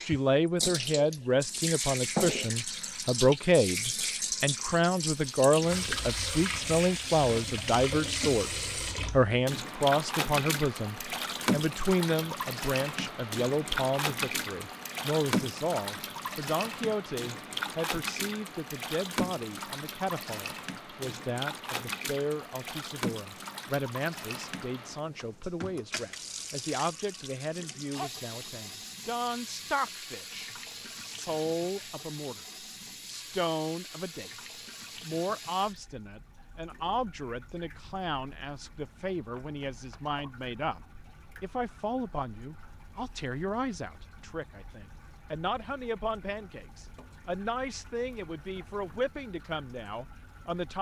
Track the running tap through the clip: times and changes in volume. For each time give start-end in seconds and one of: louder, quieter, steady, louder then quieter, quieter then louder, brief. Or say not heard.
0.0-50.7 quieter.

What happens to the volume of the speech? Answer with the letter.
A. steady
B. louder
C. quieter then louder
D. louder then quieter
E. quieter
E.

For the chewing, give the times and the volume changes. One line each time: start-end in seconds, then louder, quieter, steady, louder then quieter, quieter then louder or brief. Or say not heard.
not heard.